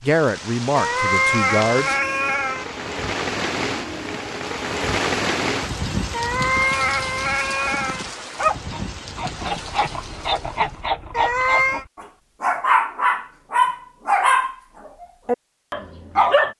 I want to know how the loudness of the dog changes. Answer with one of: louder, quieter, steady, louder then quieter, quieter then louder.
louder then quieter.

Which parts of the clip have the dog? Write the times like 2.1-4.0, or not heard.
8.3-16.5.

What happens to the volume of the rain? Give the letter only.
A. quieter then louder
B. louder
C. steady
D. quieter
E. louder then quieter
E.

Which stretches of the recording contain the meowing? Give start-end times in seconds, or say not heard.
0.8-2.6, 6.1-8.1, 11.1-11.8.